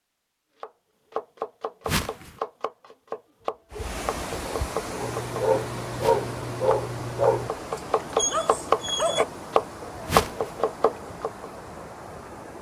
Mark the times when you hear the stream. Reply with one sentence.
You can hear the stream from 3.7 to 12.5 s.